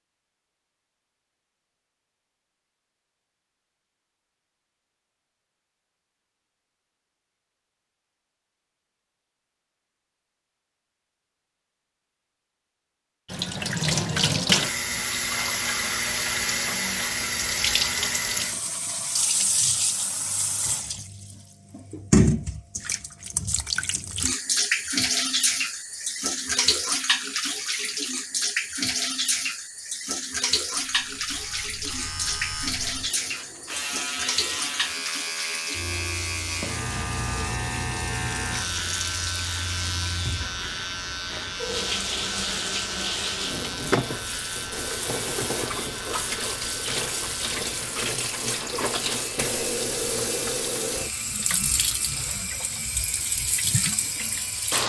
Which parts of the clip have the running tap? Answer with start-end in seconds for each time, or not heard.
13.2-54.8.